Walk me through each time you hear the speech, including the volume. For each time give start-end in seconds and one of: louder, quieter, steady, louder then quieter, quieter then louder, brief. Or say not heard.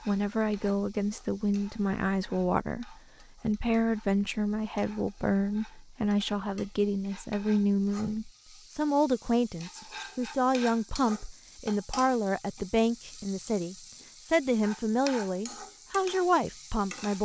0.1-17.2 steady.